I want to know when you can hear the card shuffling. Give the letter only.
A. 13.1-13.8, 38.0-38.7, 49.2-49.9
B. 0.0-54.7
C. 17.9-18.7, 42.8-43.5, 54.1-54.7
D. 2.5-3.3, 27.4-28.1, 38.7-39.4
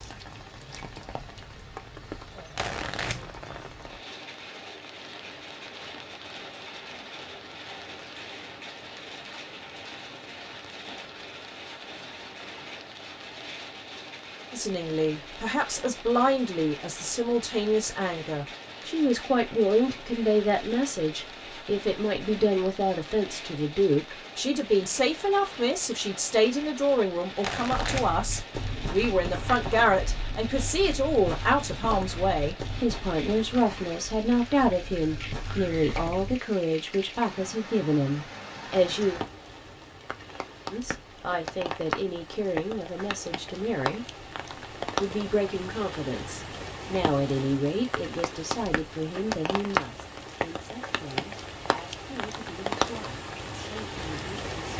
D.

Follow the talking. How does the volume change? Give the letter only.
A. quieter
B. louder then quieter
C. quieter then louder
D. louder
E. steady
A.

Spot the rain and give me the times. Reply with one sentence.
You can hear the rain from 0.0 to 54.7 s.